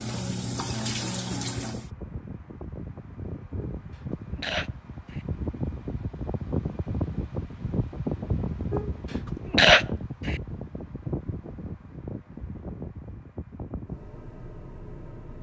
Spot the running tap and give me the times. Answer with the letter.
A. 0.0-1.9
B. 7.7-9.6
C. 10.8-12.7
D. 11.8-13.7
A.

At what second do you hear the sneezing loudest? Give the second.
10 s.